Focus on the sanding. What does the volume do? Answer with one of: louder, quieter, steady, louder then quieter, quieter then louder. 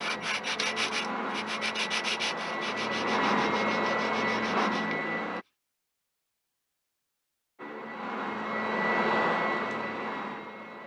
quieter.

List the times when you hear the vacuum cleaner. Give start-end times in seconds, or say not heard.
0.0-5.5, 7.5-10.8.